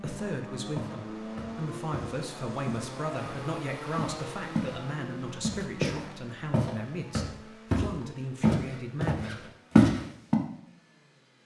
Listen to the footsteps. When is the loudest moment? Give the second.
10 s.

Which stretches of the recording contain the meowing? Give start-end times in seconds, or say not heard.
not heard.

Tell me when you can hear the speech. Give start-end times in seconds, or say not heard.
0.0-9.4.